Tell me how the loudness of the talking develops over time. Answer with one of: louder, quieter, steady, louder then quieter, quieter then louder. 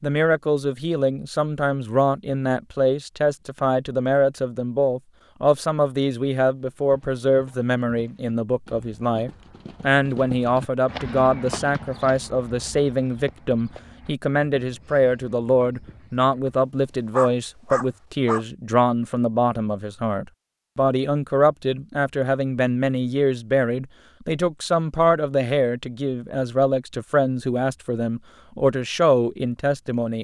steady.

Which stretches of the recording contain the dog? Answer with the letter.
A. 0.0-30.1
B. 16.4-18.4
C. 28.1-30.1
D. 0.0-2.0
B.